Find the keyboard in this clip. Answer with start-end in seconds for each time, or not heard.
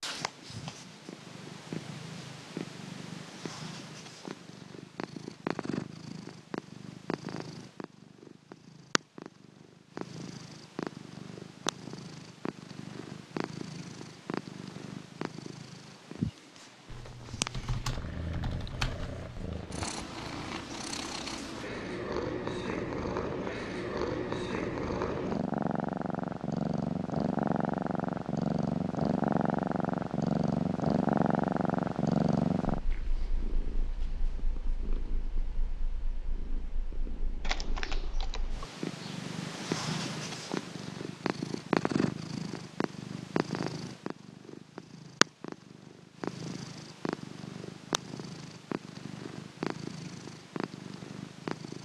16.9-19.6, 37.4-39.1.